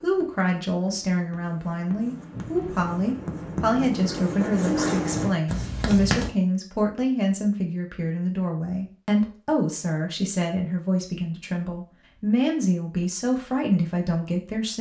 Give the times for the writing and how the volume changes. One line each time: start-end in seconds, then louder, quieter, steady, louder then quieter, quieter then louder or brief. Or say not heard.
0.0-6.3 louder.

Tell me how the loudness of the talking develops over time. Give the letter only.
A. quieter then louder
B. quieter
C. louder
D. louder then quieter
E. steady
E.